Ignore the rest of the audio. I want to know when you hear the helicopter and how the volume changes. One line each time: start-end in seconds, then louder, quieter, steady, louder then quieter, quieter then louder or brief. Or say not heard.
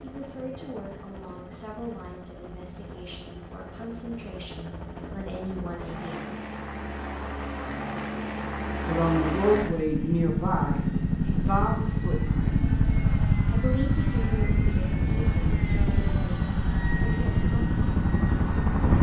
0.0-18.9 louder.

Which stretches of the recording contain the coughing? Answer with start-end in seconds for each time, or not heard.
not heard.